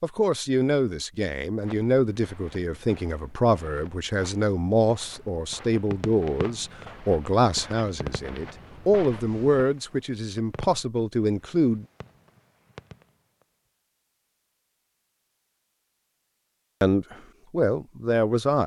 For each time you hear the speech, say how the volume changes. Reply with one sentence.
The speech can be heard from 0.0 to 11.8 s, at a steady volume; and briefly from 16.8 to 18.6 s.